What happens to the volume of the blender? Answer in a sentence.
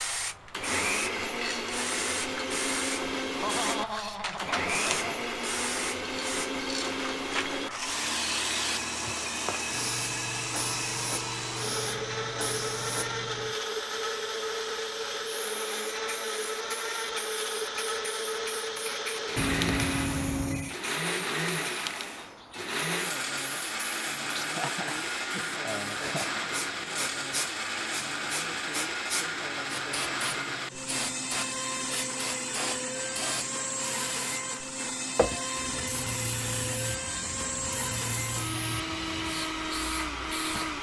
The loudness of the blender stays about the same.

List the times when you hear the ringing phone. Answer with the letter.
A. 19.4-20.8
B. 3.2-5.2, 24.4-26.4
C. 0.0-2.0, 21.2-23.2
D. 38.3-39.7
A.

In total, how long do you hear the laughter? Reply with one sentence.
The laughter can be heard for 4 seconds in total.